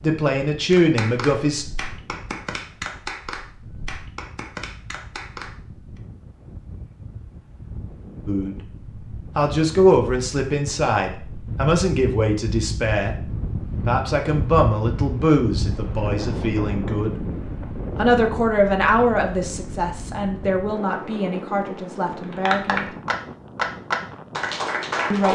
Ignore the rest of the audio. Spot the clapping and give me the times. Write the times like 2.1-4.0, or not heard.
0.7-6.0, 22.2-25.3.